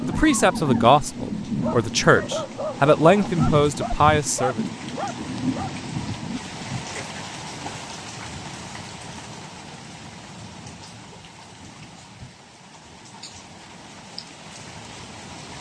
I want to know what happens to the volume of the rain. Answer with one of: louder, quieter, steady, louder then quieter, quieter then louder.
quieter.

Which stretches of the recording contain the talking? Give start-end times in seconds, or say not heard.
0.0-4.7.